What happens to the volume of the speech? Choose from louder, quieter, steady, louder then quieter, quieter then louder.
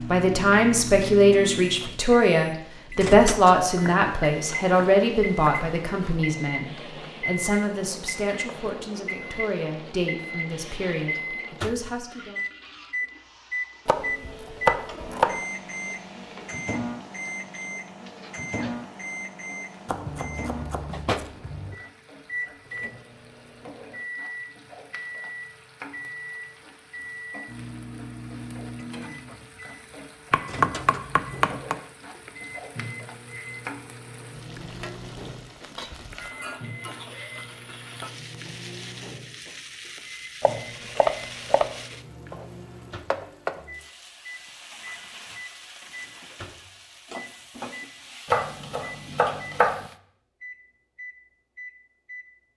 quieter.